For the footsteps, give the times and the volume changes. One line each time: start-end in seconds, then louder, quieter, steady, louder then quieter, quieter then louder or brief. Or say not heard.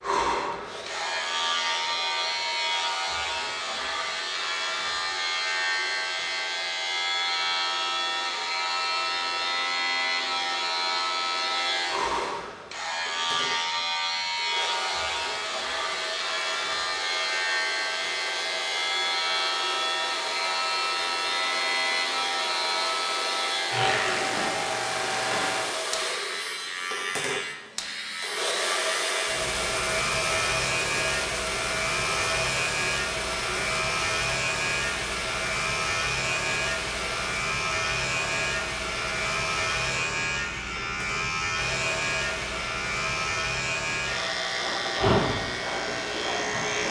not heard.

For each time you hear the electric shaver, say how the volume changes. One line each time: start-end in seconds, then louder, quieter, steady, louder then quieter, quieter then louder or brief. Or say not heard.
0.0-46.8 steady.